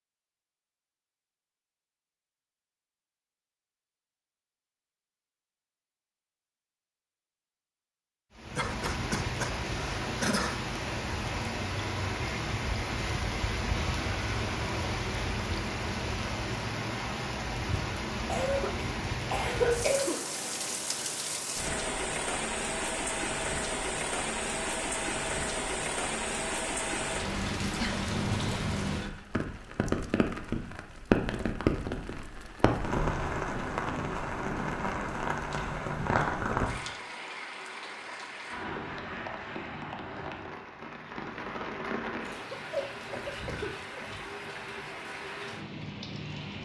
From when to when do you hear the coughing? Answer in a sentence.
You can hear the coughing from 8.6 to 10.6 s, from 18.2 to 20.2 s and from 42.3 to 44.1 s.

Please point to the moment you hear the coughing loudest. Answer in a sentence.
The loudest moment of the coughing is at 20 seconds.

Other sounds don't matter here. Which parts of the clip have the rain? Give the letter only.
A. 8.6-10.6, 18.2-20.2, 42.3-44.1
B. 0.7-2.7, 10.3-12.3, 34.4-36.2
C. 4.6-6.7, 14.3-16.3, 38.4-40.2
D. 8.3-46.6
D.